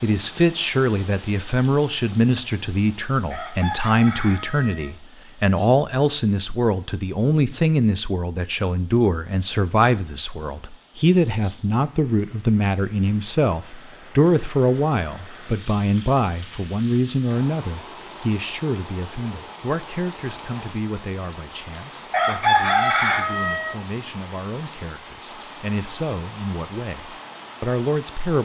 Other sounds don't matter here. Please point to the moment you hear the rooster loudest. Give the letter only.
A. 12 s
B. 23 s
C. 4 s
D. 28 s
B.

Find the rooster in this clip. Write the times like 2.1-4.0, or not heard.
3.3-4.9, 22.1-23.8.